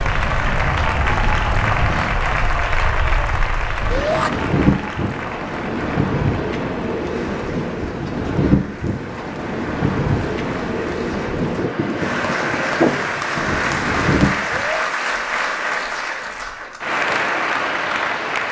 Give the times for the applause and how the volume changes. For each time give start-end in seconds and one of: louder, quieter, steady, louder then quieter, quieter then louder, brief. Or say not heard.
0.0-18.4 quieter then louder.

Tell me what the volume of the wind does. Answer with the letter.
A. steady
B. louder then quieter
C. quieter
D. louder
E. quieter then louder
D.